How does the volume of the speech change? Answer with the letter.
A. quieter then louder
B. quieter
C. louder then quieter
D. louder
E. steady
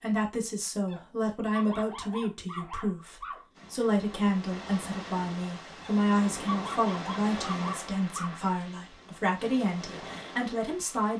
E.